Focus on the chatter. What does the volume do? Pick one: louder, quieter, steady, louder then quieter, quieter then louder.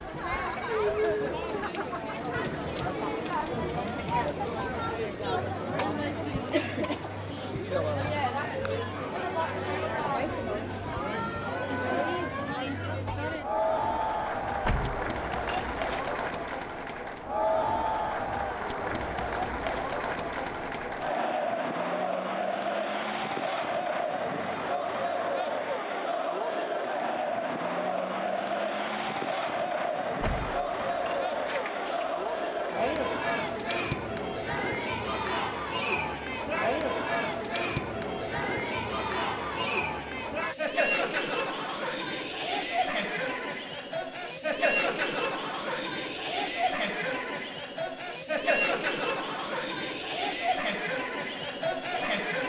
steady.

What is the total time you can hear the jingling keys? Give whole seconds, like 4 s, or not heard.
4 s.